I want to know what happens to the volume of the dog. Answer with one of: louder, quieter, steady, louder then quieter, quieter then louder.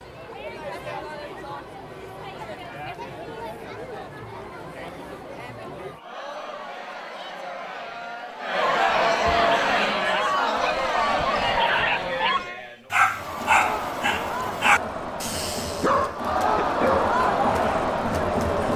louder.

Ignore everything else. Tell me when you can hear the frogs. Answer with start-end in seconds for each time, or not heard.
not heard.